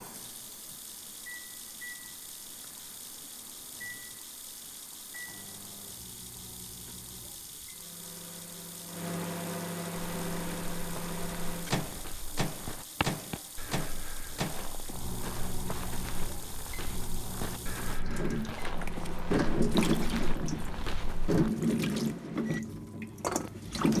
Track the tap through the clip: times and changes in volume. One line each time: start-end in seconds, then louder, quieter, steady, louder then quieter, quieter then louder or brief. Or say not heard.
0.0-23.9 louder.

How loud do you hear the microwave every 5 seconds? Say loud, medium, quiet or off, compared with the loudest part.
quiet, medium, loud, medium, medium.